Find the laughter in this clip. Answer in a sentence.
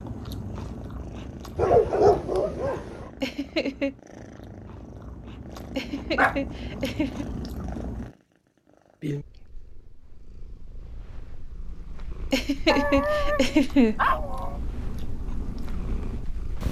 The laughter can be heard from 3.2 to 4.0 s, from 5.8 to 7.2 s and from 12.3 to 13.9 s.